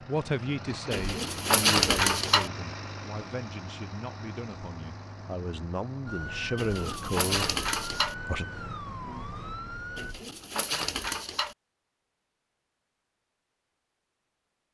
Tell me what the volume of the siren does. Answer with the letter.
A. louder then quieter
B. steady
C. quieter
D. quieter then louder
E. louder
B.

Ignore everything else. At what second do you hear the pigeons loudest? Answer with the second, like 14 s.
2 s.